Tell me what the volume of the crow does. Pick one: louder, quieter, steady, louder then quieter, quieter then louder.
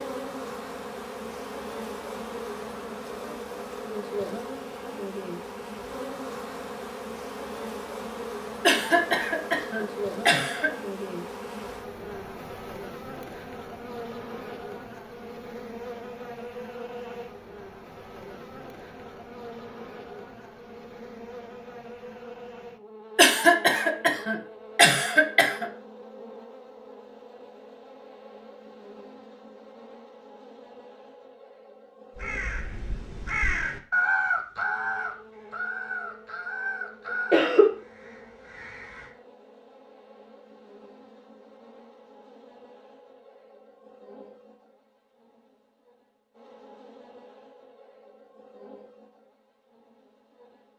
louder then quieter.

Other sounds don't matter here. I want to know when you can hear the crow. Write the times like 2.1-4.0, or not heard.
32.1-39.1.